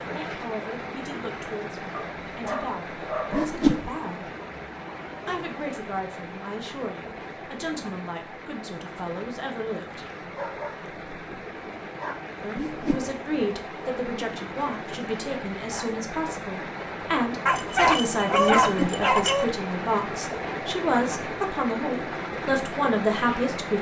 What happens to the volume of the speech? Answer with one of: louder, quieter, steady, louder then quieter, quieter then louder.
louder.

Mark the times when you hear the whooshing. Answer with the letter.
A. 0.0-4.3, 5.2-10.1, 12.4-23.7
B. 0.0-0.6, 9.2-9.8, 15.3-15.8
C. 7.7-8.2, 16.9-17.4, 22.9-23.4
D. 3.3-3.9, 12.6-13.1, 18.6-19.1
D.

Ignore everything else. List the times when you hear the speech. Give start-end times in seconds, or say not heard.
0.0-4.3, 5.2-10.1, 12.4-23.7.